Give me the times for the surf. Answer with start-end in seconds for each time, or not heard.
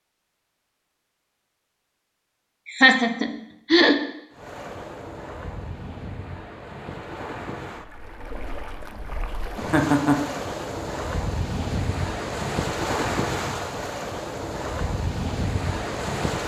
4.3-16.4.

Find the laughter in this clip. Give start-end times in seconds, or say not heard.
2.6-4.0, 9.7-10.2.